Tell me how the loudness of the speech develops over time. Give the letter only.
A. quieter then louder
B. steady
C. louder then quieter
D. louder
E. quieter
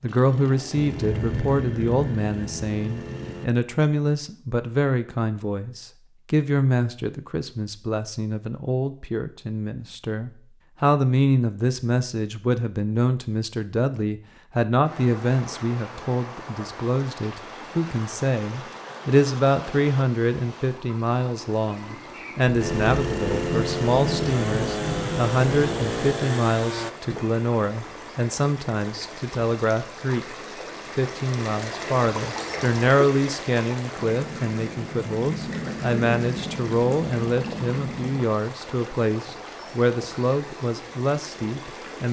B.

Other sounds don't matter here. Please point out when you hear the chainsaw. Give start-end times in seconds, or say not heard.
0.0-3.5, 22.6-26.9.